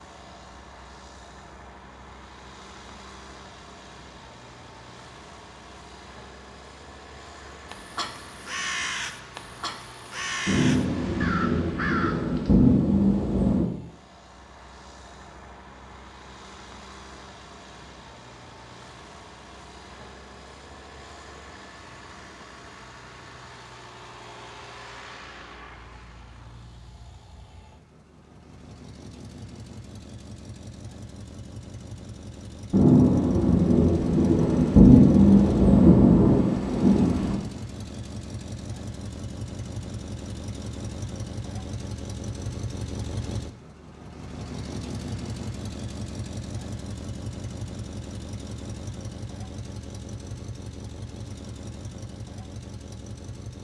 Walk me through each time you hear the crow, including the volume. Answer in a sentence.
You can hear the crow from 7.5 to 12.7 s, at a steady volume.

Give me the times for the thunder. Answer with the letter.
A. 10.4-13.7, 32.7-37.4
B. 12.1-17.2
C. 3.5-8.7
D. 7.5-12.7
A.